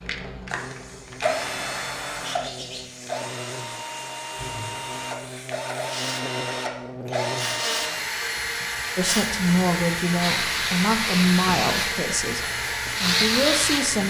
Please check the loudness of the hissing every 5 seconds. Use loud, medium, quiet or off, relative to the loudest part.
quiet, medium, loud.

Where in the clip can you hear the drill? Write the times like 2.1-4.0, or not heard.
0.0-14.0.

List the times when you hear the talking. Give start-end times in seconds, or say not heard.
8.9-14.0.